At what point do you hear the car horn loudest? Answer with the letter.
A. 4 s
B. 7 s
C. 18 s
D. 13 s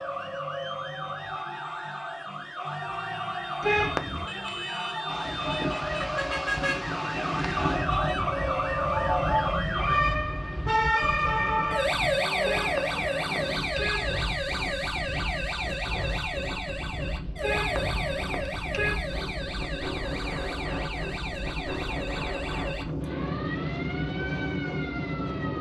A.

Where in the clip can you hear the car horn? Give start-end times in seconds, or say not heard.
3.6-4.2, 12.4-14.2, 17.4-19.0.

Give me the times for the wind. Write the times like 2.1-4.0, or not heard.
5.0-25.5.